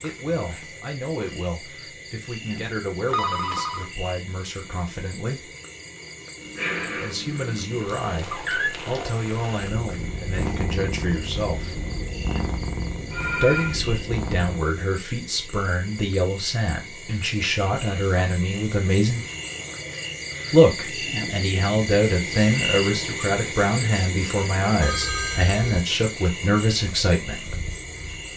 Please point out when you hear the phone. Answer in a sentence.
You can hear the phone from 3.1 to 3.9 s, from 13.1 to 13.8 s and from 24.8 to 25.9 s.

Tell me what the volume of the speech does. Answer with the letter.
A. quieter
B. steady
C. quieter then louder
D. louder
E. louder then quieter
D.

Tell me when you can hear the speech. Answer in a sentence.
You can hear the speech from 0.0 to 5.5 s, from 7.0 to 11.8 s, from 13.3 to 19.2 s and from 20.5 to 27.6 s.